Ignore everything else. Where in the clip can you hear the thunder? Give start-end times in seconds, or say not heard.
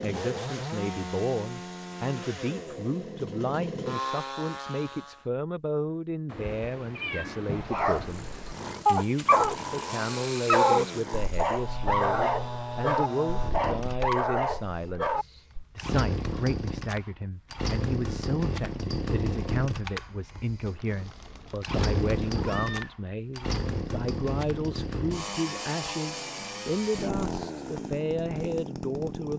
not heard.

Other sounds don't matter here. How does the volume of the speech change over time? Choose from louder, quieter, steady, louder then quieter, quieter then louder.
steady.